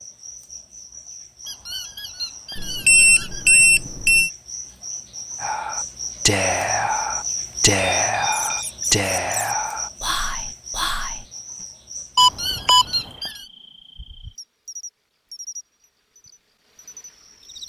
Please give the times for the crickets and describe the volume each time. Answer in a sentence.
You can hear the crickets from 0.0 to 17.6 s, getting louder then quieter.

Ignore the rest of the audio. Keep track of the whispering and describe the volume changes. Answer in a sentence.
The loudness of the whispering goes down.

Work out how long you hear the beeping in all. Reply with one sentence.
The beeping can be heard for 3 seconds in total.